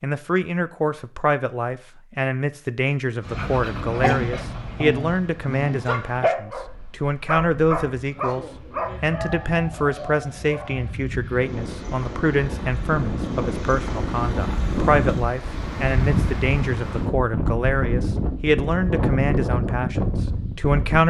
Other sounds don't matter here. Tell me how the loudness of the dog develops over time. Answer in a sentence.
The volume of the dog goes down.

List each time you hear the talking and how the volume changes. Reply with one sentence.
You can hear the talking from 0.0 to 21.0 s, at a steady volume.